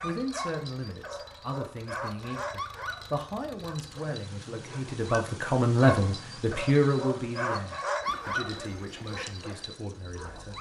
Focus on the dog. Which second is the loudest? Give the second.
8 s.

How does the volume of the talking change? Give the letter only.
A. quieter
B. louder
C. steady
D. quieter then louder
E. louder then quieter
E.